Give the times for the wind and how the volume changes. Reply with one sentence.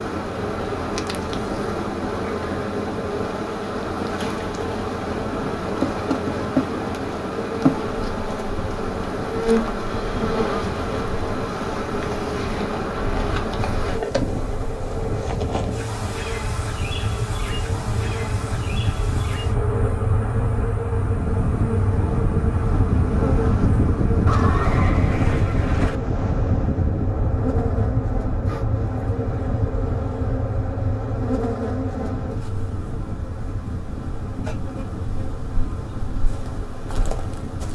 You can hear the wind from 0.0 to 37.6 s, getting louder then quieter.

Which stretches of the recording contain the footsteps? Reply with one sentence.
You can't hear the footsteps here.